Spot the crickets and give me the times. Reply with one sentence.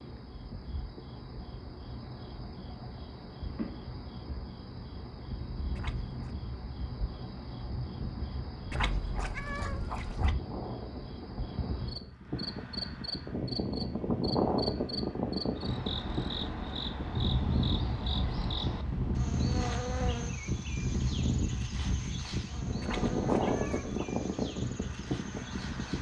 The crickets can be heard from 0.0 to 25.9 s.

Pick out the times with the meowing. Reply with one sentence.
The meowing can be heard from 5.8 to 6.3 s, from 8.7 to 10.3 s and from 22.8 to 24.1 s.